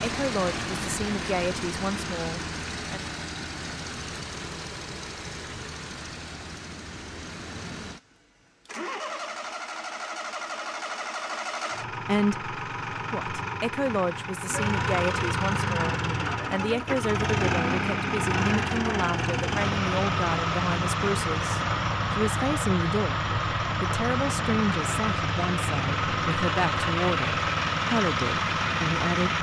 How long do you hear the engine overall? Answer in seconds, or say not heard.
29 s.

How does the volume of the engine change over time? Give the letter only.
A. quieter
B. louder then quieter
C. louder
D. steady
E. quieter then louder
C.